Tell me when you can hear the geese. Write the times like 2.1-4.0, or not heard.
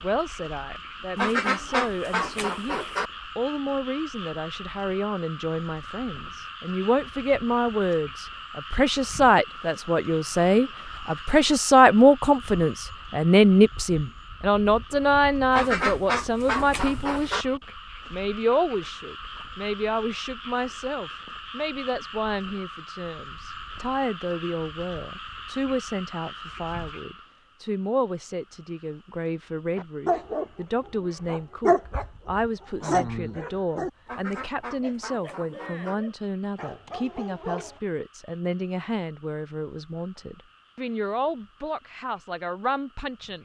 1.1-3.1, 15.5-17.4, 34.0-36.0.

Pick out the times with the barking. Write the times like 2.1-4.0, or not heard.
29.8-37.8.